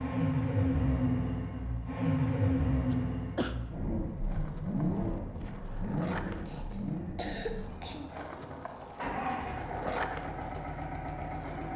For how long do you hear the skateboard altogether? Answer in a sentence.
The skateboard can be heard for 8 seconds in total.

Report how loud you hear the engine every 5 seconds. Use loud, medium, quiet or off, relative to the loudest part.
loud, medium, medium.